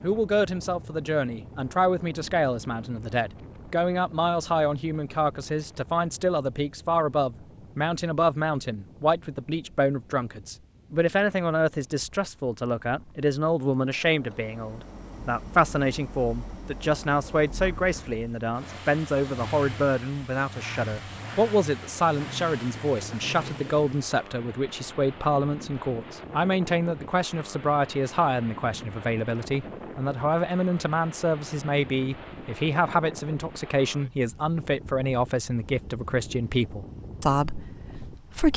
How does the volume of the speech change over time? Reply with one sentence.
The loudness of the speech stays about the same.